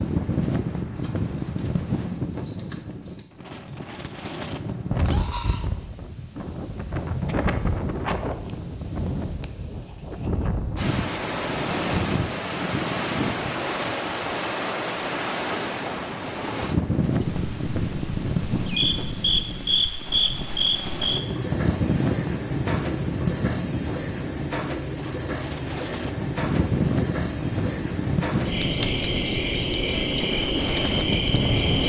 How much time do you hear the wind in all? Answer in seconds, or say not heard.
32 s.